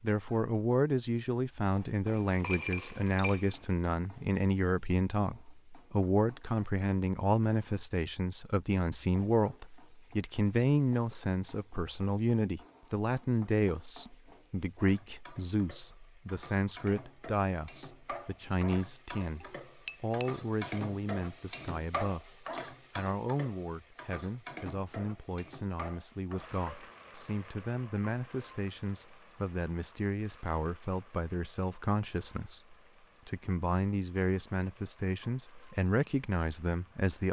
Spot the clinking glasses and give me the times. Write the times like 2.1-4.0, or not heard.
2.0-3.6, 19.4-20.3.